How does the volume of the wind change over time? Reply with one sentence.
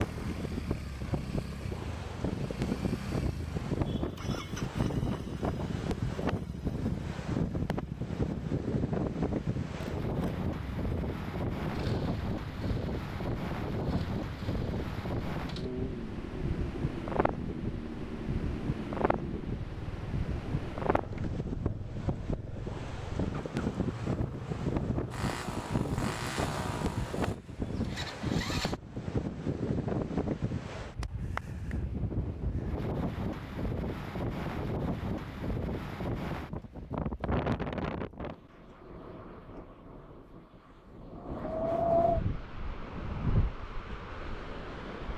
The loudness of the wind stays about the same.